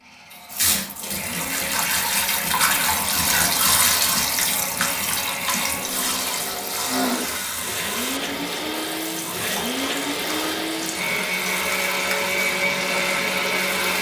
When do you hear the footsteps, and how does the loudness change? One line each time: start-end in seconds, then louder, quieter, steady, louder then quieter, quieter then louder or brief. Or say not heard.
not heard.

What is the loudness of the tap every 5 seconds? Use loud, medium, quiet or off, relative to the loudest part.
loud, medium, medium.